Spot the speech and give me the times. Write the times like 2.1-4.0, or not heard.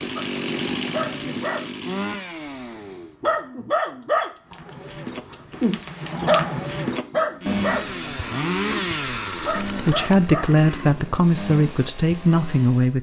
9.3-12.9.